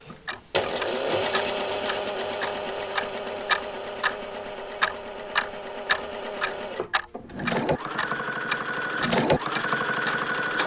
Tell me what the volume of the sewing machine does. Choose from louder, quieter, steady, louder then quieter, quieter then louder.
quieter then louder.